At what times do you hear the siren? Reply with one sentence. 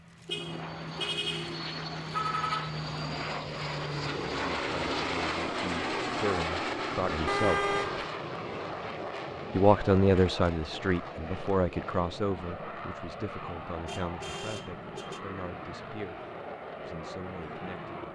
You can't hear the siren here.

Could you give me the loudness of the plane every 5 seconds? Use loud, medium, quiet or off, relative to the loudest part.
loud, loud, medium, medium.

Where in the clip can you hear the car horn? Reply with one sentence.
The car horn can be heard from 0.2 to 2.8 s, from 7.2 to 8.1 s and from 13.8 to 15.2 s.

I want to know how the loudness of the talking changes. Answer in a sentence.
The volume of the talking goes up, then down.